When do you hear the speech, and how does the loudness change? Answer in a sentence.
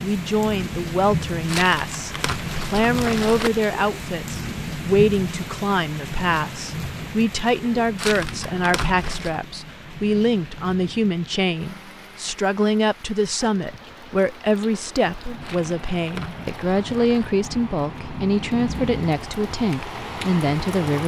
The speech can be heard from 0.0 to 21.0 s, at a steady volume.